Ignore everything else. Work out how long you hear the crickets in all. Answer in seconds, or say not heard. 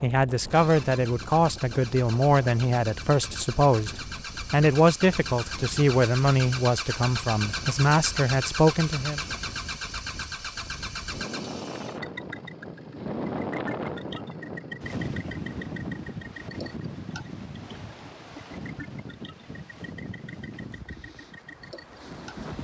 not heard.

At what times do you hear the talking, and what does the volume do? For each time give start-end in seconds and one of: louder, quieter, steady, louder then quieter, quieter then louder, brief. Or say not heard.
0.0-9.2 steady.